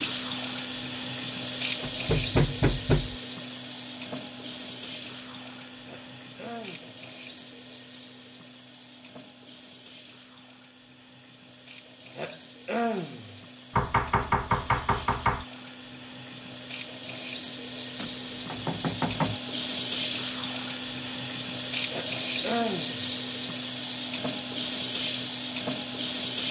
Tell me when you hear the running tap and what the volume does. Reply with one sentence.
The running tap can be heard from 0.0 to 26.4 s, getting quieter then louder.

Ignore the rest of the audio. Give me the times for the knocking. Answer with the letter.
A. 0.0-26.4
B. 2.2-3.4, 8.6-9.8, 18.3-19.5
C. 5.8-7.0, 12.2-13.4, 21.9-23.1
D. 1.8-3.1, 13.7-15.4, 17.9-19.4
D.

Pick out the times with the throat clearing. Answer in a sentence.
The throat clearing can be heard from 5.8 to 7.0 s, from 12.2 to 13.4 s and from 21.9 to 23.1 s.